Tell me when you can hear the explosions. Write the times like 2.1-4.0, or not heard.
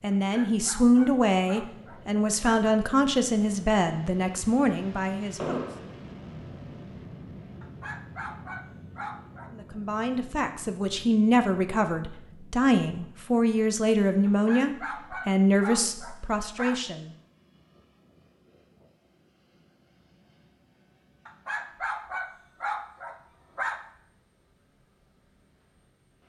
5.3-5.8.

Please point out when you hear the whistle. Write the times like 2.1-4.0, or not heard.
not heard.